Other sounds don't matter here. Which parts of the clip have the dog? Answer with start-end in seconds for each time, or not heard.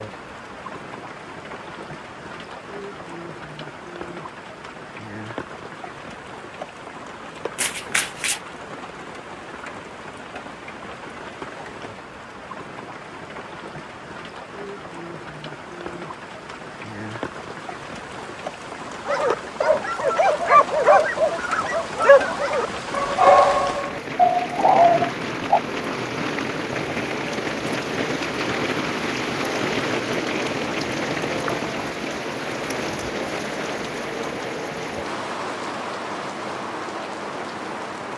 19.1-25.6.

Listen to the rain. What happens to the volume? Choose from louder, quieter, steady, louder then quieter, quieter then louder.
louder.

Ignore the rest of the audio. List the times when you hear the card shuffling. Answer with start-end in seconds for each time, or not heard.
7.5-8.4.